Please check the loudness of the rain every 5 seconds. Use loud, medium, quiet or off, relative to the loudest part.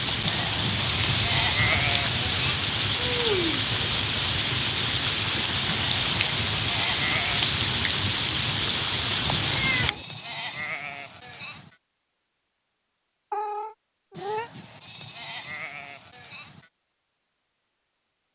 loud, loud, off, off.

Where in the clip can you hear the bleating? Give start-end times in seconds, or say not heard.
0.2-2.7, 5.7-7.5, 9.2-11.8, 14.1-16.7.